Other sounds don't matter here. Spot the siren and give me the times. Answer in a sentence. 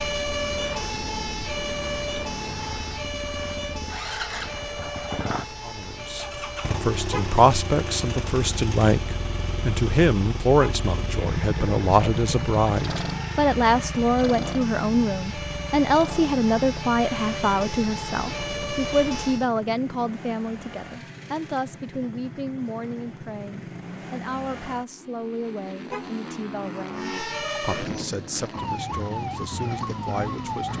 The siren can be heard from 0.0 to 19.5 s and from 26.9 to 30.7 s.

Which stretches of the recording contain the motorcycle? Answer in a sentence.
The motorcycle can be heard from 0.0 to 30.7 s.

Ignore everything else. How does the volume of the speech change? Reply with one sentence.
The loudness of the speech goes down.